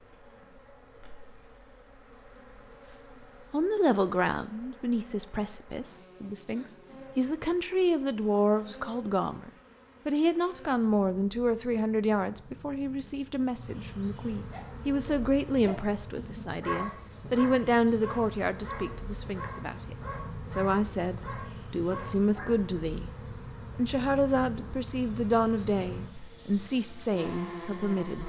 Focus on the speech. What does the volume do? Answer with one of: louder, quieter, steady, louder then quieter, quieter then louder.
steady.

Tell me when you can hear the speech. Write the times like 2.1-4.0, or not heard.
3.5-23.1, 23.8-28.2.